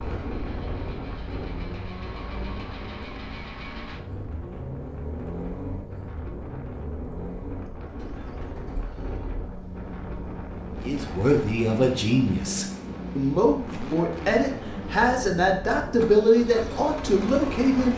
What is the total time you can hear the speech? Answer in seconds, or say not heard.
7 s.